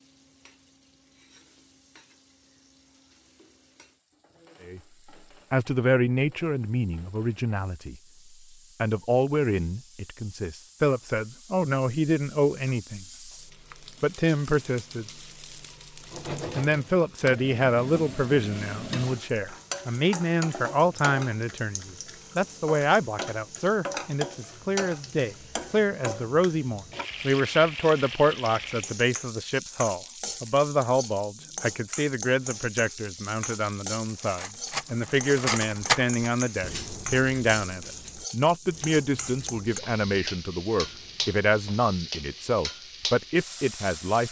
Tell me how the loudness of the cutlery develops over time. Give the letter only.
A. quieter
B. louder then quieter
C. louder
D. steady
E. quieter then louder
A.